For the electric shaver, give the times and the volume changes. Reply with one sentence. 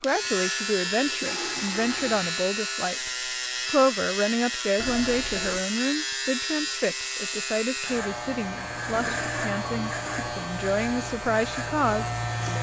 The electric shaver can be heard from 0.0 to 12.5 s, at a steady volume.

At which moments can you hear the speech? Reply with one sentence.
The speech can be heard from 0.0 to 12.5 s.